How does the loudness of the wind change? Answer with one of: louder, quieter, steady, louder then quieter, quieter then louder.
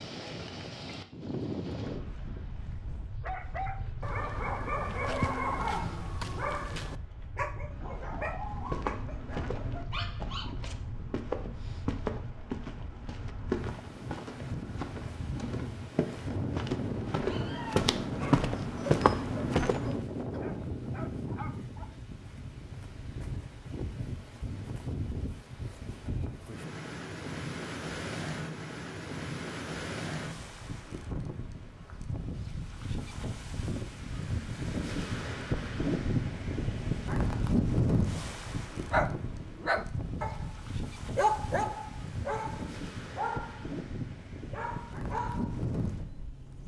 louder.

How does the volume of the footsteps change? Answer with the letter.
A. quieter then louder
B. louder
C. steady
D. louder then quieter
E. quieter
B.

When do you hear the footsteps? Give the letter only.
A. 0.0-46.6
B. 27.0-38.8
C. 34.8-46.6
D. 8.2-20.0
D.